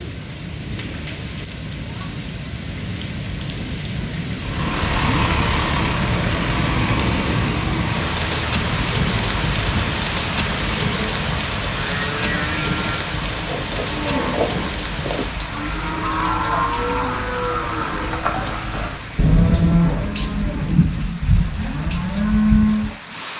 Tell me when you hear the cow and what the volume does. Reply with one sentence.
The cow can be heard from 11.8 to 22.9 s, getting louder.